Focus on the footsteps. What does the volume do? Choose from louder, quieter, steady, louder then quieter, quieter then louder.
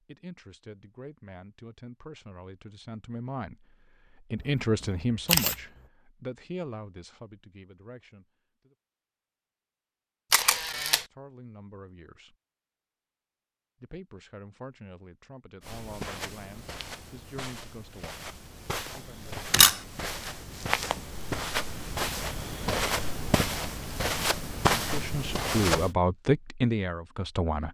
louder.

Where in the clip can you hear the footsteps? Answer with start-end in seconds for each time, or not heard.
15.6-25.9.